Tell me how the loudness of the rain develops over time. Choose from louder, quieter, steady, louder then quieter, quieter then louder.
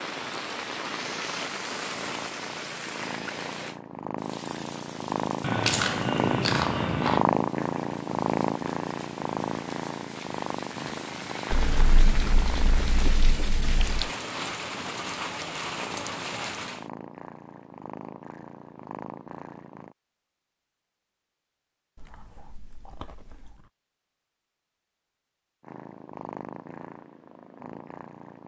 quieter then louder.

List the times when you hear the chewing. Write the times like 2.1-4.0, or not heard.
5.4-7.2, 11.5-14.1, 21.9-23.7.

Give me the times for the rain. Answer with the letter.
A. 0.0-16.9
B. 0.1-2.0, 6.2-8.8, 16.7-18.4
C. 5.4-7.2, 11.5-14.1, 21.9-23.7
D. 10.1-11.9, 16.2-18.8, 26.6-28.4
A.